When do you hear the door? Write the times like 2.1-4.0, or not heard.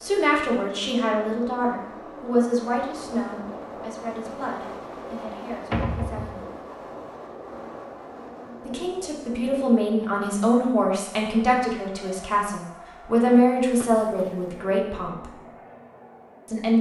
5.7-6.5, 13.8-14.5.